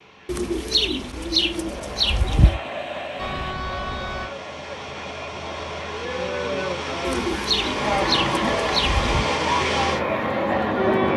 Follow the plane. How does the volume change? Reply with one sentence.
The loudness of the plane goes up.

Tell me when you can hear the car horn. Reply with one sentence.
You can hear the car horn from 3.1 to 4.3 s.